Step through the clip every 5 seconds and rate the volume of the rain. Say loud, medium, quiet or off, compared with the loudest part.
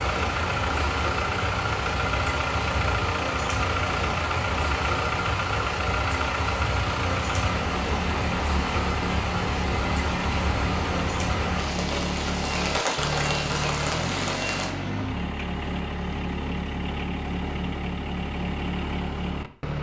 loud, loud, loud, off.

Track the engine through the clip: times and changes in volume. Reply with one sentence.
The engine can be heard from 0.0 to 19.7 s, at a steady volume.